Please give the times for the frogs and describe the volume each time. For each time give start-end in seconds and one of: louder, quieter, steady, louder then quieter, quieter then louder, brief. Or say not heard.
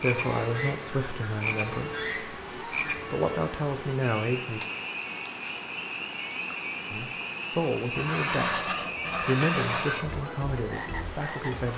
0.0-11.7 steady.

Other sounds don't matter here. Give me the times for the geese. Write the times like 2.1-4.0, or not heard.
0.1-3.0, 8.0-10.2.